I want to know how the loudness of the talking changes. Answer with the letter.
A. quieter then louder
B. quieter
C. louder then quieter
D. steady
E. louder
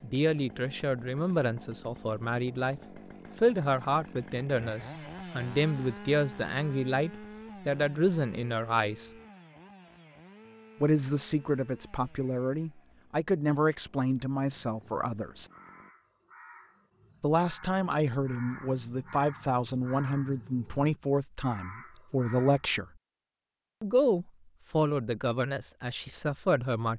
D.